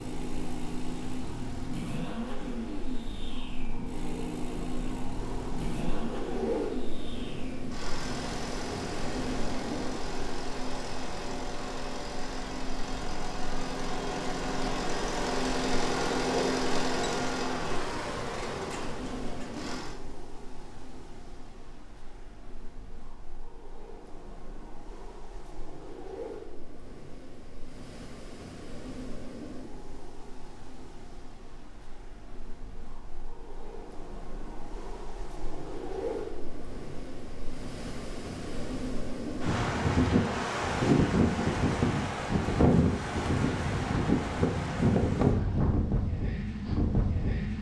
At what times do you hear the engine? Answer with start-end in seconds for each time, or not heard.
0.0-20.0.